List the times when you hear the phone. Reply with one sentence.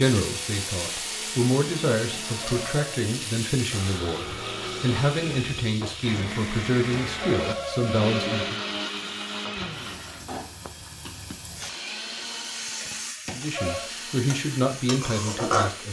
The phone can be heard from 2.1 to 3.1 s, from 7.0 to 8.5 s and from 13.2 to 13.9 s.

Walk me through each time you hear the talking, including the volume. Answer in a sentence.
The talking can be heard from 0.0 to 8.6 s, at a steady volume; and briefly from 13.3 to 15.8 s.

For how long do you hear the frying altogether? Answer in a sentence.
The frying can be heard for 16 seconds in total.